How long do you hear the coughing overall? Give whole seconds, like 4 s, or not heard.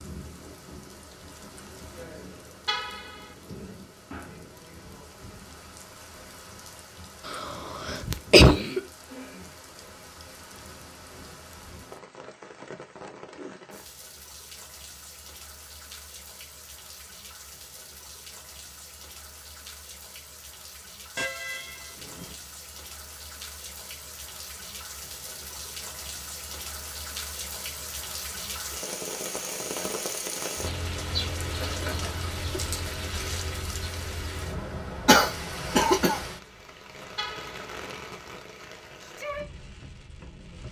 3 s.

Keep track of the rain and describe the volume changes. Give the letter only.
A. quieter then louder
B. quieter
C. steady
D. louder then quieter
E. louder
E.